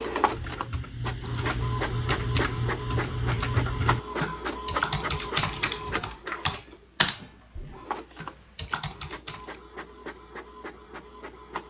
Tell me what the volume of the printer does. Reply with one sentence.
The loudness of the printer goes down.